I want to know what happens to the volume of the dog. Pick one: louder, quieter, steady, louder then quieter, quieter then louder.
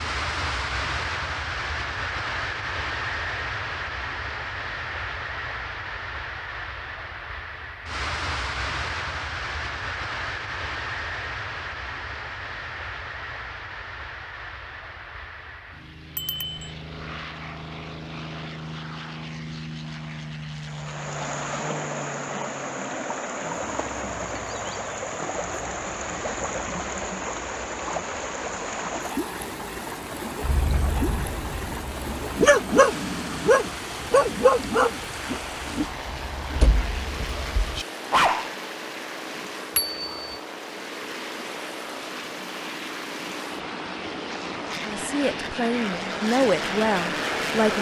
louder then quieter.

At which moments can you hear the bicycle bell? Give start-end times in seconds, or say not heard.
16.1-16.7, 39.8-40.4.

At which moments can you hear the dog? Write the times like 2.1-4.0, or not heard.
30.4-38.5.